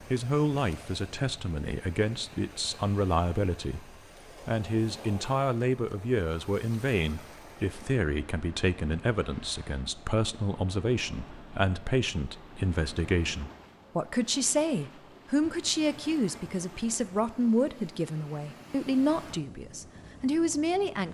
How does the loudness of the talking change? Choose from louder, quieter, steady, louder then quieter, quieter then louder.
steady.